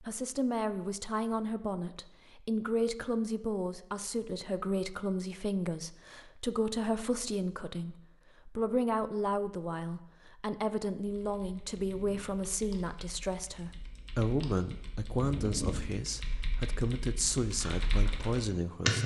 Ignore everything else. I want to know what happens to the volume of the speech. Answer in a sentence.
The loudness of the speech stays about the same.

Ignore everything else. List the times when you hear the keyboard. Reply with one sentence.
The keyboard can be heard from 11.1 to 19.0 s.